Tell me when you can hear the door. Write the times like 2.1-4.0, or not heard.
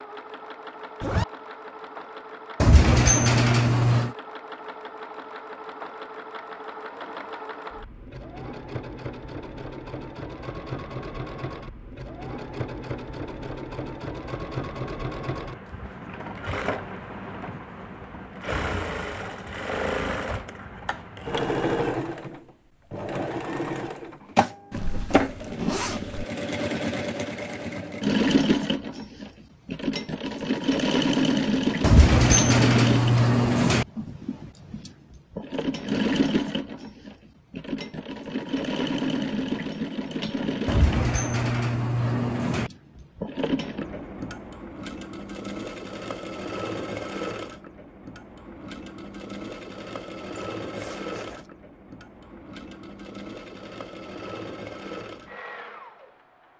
2.6-4.1, 31.8-33.9, 40.6-42.7.